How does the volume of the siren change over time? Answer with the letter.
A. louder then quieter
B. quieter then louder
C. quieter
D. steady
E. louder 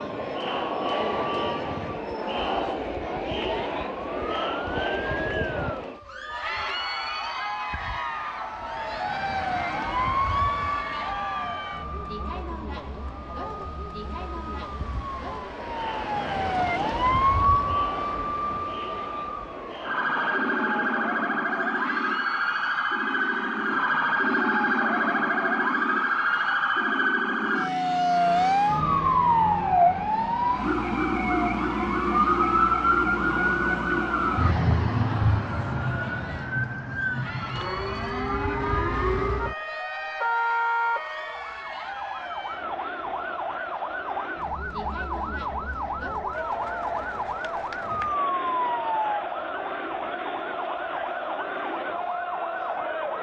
A.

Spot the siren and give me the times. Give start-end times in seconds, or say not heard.
0.0-53.1.